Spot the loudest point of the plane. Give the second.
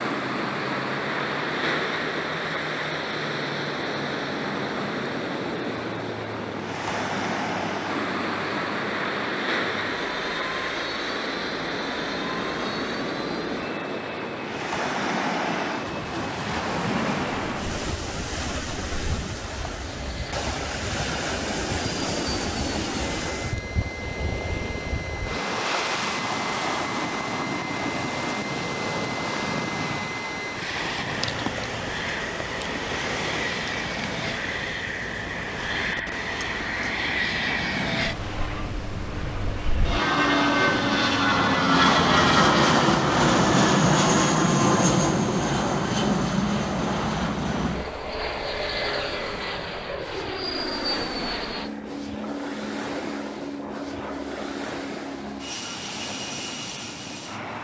42 s.